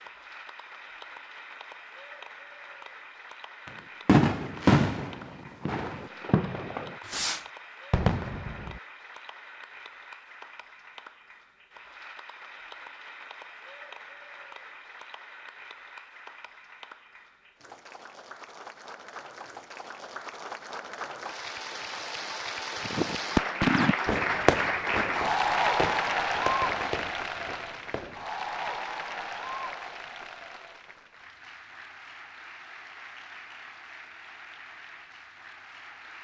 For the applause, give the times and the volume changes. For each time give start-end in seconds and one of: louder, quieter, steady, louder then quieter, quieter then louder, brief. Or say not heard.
0.0-36.2 louder then quieter.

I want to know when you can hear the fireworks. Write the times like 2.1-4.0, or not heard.
3.6-8.8, 22.9-28.2.